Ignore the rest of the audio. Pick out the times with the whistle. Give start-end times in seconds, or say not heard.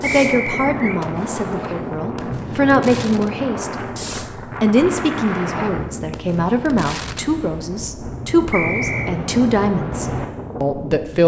0.0-1.0, 8.5-9.2.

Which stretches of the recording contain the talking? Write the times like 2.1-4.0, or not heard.
0.0-3.7, 4.6-11.2.